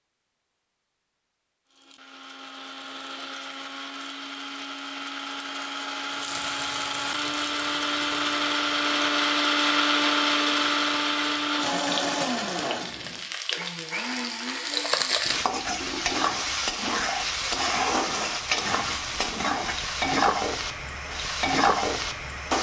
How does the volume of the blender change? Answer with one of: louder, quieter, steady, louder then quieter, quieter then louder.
louder then quieter.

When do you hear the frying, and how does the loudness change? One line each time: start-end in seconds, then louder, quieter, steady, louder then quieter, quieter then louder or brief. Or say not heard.
6.1-22.5 louder.